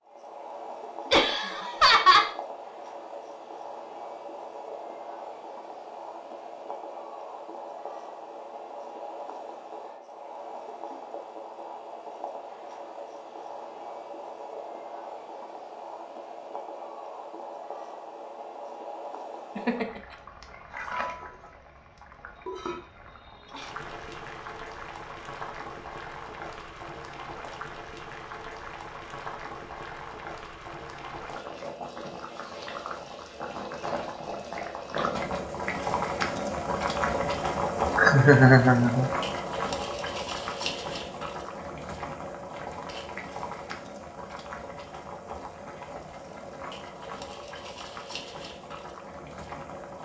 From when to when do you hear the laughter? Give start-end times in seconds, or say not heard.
1.1-2.3, 19.6-20.0, 38.0-39.1.